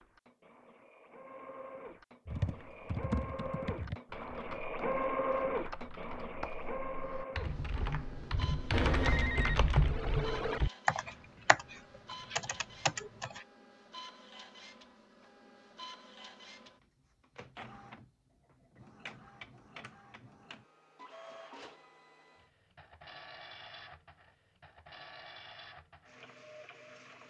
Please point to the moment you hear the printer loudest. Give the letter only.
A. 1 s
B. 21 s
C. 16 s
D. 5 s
D.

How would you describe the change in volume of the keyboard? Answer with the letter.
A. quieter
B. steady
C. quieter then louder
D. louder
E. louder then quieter
C.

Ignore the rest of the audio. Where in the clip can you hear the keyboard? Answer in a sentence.
You can hear the keyboard from 2.2 to 13.4 s.